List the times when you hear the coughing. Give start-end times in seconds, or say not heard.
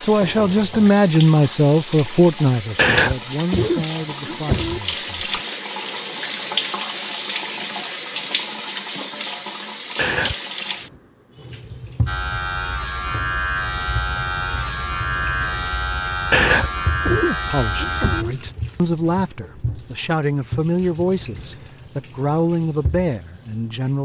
2.8-4.8, 9.9-10.3, 16.3-18.4.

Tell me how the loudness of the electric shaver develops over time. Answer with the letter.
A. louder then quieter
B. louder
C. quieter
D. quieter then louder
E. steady
E.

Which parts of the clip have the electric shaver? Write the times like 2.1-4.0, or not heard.
12.1-18.2.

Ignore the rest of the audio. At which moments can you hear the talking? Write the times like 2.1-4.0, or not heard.
0.0-5.4, 17.4-24.0.